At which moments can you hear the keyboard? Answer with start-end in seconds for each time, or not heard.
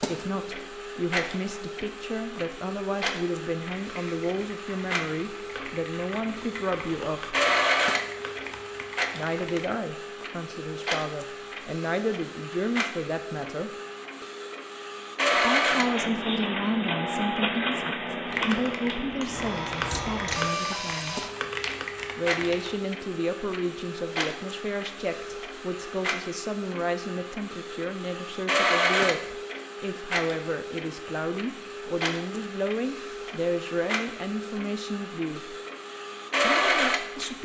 3.6-9.6, 18.2-22.8.